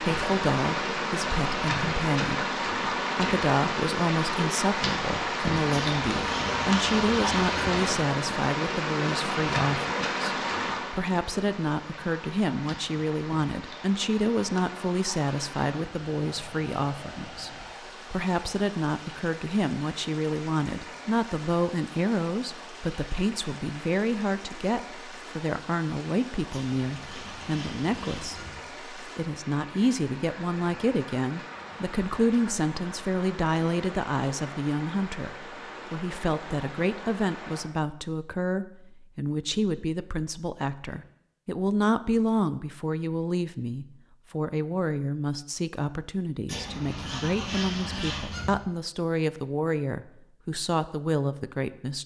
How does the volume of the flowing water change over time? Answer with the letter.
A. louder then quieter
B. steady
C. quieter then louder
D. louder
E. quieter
E.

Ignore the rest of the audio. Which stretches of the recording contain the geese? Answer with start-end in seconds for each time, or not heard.
5.7-7.7, 26.5-28.5, 46.5-48.5.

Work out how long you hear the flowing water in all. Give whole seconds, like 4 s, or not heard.
38 s.